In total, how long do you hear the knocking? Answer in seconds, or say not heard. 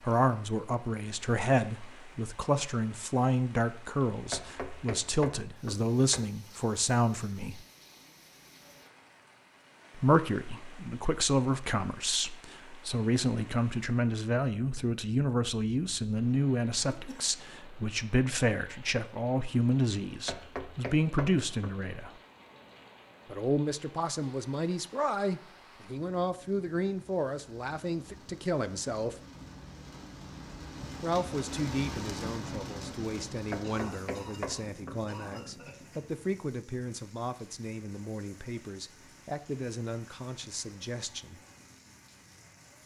5 s.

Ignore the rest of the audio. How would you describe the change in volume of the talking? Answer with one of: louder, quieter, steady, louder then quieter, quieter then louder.
quieter.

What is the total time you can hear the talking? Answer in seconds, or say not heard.
36 s.